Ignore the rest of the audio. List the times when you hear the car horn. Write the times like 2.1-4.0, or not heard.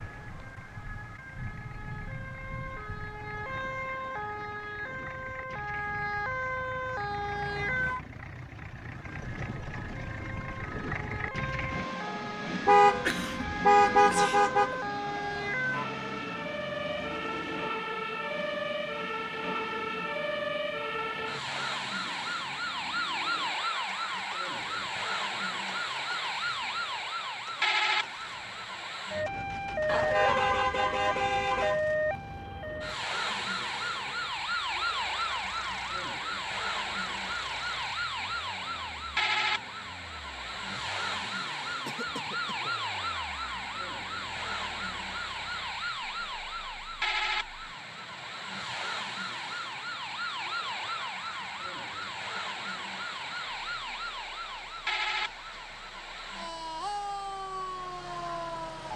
12.7-14.8, 29.9-31.8.